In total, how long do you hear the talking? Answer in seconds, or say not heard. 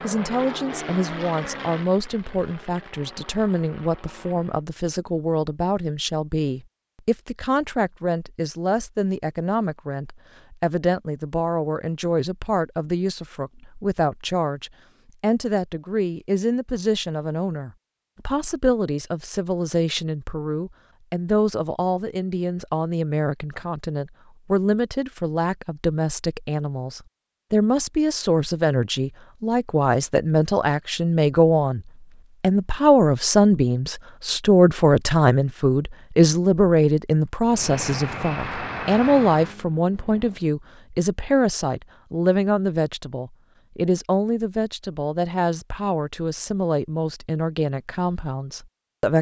49 s.